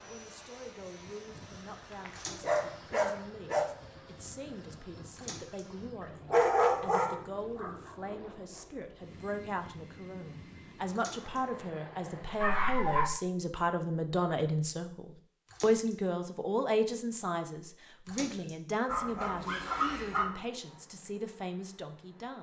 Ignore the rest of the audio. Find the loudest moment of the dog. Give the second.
7 s.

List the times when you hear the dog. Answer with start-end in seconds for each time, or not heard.
2.0-3.7, 6.0-7.9, 12.4-13.1, 18.9-20.4.